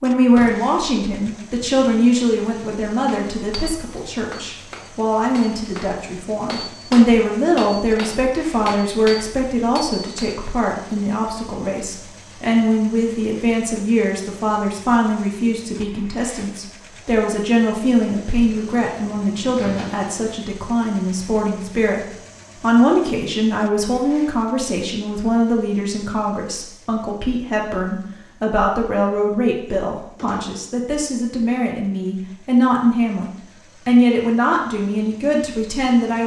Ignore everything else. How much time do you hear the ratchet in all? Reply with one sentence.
The ratchet can't be heard in this clip.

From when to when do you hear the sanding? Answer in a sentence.
The sanding can't be heard in this clip.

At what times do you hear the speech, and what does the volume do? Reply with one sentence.
The speech can be heard from 0.0 to 36.2 s, at a steady volume.